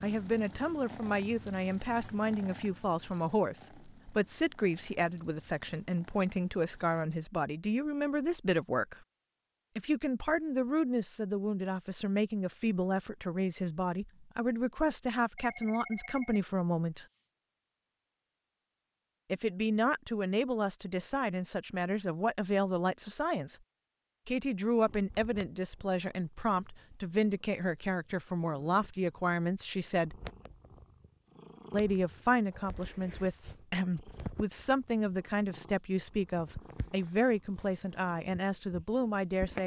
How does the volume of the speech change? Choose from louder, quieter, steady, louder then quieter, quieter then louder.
steady.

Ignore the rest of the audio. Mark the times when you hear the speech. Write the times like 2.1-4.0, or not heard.
0.0-9.0, 9.8-17.1, 19.3-23.6, 24.2-30.2, 31.7-39.6.